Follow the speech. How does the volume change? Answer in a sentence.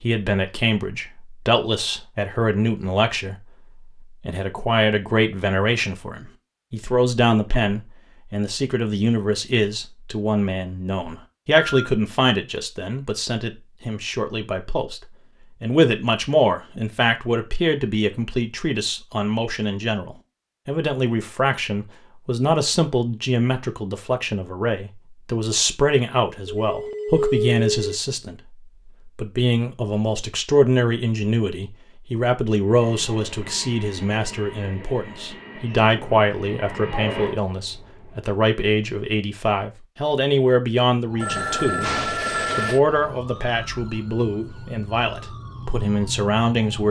The volume of the speech stays about the same.